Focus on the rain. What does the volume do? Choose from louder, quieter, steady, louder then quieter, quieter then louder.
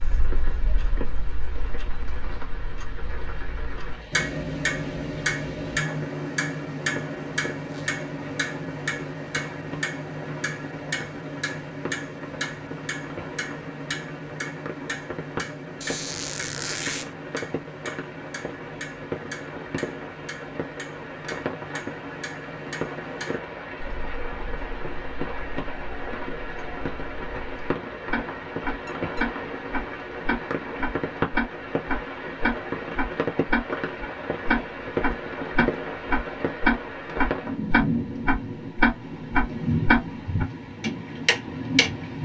louder.